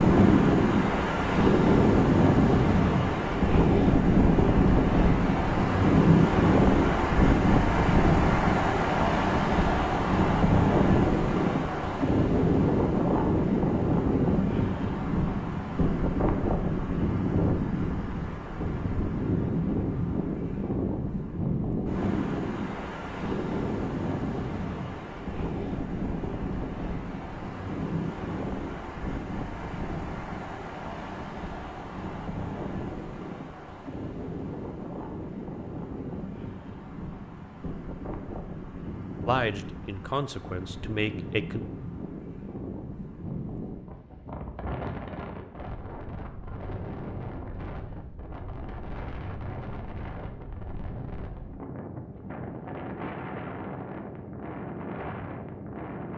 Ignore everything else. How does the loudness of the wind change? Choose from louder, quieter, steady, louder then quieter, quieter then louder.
quieter.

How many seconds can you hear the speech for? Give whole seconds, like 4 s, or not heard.
2 s.